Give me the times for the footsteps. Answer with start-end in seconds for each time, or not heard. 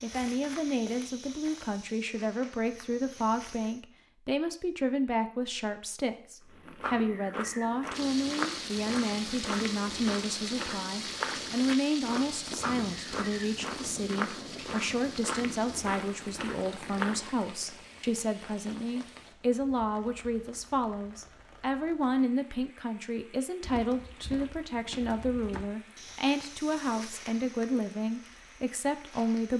0.0-3.8, 6.5-17.4, 23.6-29.5.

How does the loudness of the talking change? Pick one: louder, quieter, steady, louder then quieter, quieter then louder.
steady.